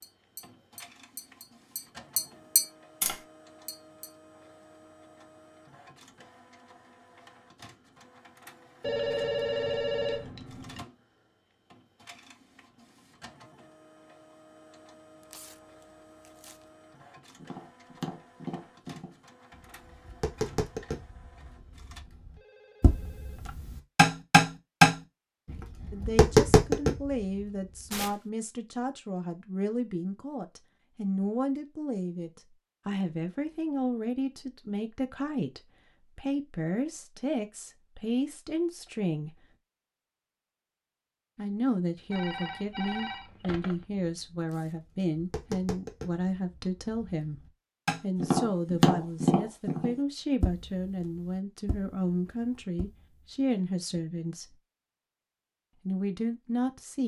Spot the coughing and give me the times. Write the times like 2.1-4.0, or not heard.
not heard.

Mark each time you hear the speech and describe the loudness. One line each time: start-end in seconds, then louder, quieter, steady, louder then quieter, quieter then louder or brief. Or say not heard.
25.9-39.5 steady
41.4-54.6 steady
55.9-57.0 brief.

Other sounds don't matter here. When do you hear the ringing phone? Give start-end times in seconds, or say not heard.
8.8-10.8, 22.4-23.6, 42.1-43.9.